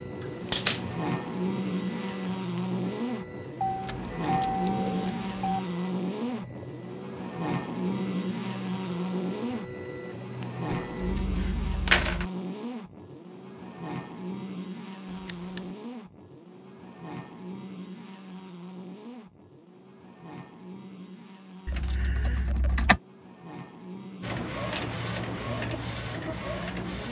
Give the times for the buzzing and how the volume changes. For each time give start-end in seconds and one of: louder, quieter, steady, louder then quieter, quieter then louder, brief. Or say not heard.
0.0-27.0 quieter.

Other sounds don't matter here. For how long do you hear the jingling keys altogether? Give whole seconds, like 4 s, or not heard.
5 s.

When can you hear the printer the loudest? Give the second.
25 s.